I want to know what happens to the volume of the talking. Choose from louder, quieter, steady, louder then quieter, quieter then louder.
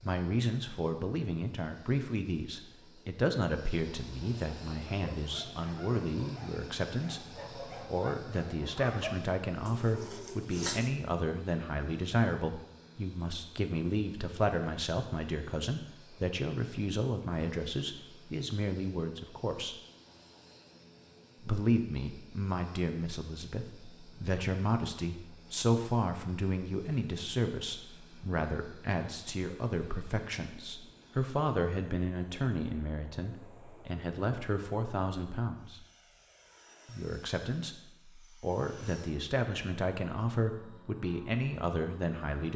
steady.